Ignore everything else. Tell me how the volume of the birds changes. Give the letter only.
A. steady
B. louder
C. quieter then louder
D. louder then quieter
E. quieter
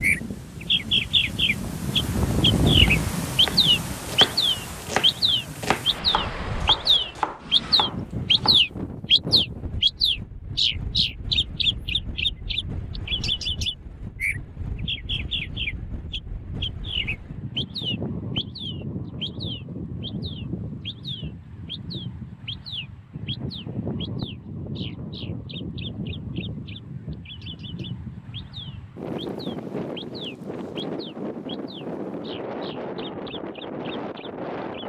E.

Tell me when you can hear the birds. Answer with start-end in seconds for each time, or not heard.
0.0-34.6.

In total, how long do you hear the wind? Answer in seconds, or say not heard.
35 s.